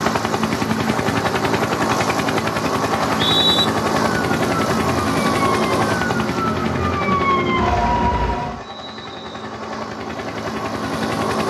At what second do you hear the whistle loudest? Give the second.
3 s.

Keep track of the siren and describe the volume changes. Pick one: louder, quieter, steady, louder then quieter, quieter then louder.
louder.